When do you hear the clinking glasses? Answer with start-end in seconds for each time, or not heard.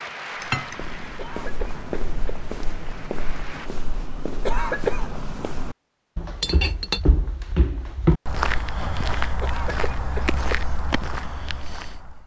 0.4-0.9, 6.4-7.0.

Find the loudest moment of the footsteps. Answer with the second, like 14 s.
8 s.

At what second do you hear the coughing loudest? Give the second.
5 s.